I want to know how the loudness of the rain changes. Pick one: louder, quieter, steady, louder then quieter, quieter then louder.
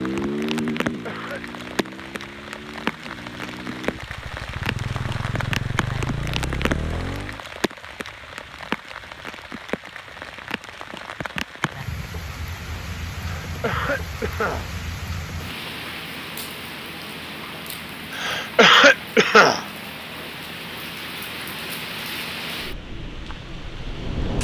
steady.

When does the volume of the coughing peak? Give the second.
19 s.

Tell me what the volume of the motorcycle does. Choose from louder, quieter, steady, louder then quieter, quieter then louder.
quieter then louder.